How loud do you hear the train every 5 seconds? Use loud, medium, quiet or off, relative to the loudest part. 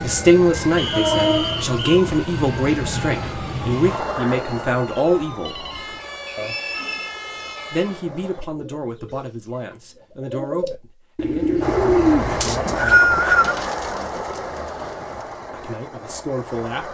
loud, quiet, loud, medium.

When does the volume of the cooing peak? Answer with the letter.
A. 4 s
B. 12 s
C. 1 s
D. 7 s
B.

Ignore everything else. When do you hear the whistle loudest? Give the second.
13 s.